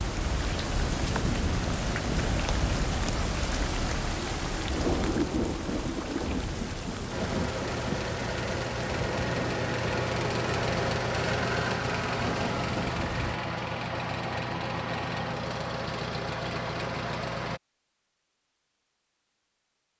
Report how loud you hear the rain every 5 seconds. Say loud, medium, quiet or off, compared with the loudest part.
loud, loud, medium, off.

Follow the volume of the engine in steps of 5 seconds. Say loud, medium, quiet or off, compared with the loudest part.
off, loud, loud, loud.